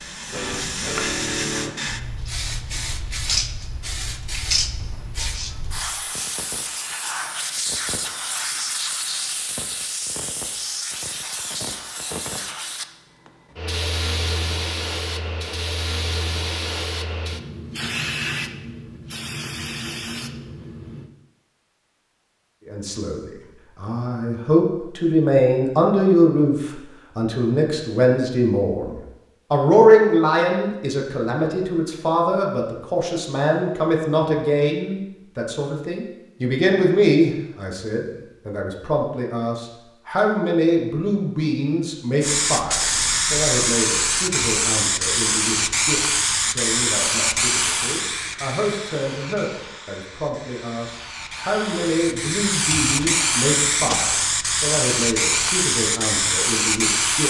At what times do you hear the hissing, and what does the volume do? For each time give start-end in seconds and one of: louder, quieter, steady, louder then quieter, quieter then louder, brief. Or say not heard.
0.0-21.1 steady
42.2-57.2 quieter then louder.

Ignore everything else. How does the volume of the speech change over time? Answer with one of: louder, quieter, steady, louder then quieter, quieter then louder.
quieter.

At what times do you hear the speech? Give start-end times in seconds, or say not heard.
22.6-57.2.